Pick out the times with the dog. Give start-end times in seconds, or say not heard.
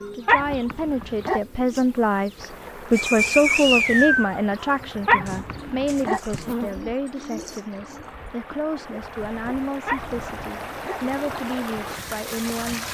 0.2-1.4, 5.0-6.2, 9.8-11.0.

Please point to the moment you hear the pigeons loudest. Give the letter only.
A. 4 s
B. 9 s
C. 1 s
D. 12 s
A.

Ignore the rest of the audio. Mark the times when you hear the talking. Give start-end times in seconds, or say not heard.
0.1-12.8.